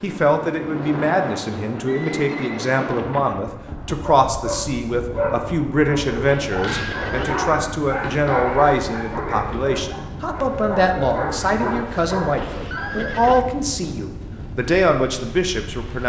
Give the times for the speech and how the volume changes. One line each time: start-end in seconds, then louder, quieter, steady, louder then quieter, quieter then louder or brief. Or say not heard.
0.0-16.0 steady.